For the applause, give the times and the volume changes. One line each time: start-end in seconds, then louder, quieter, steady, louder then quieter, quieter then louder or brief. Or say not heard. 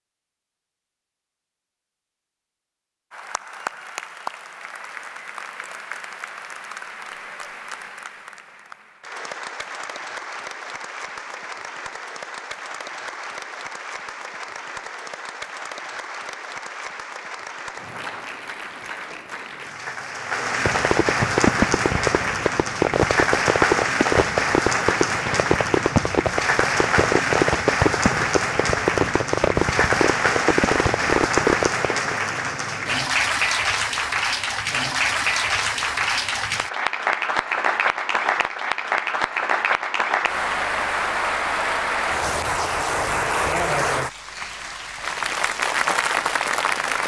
3.1-47.0 louder.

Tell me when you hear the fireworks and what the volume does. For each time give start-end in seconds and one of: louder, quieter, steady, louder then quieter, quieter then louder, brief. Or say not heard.
20.6-32.1 steady.